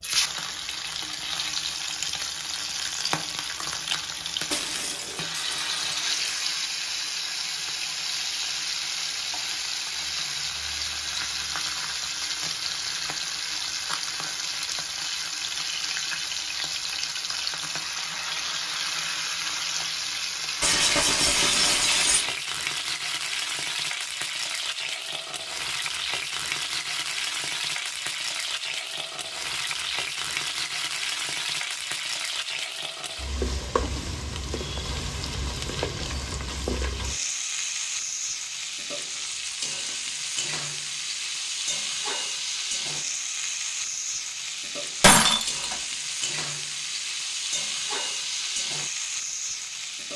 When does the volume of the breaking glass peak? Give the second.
45 s.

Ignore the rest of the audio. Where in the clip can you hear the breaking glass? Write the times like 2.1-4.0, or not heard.
4.5-6.5, 20.6-22.3, 45.0-45.8.